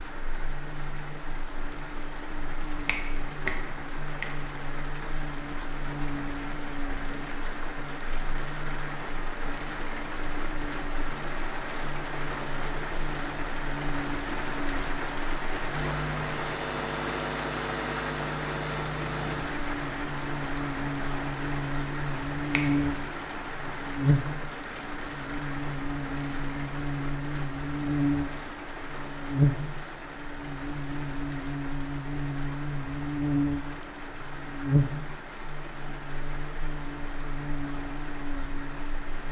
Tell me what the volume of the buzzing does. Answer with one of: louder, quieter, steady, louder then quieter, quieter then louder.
louder.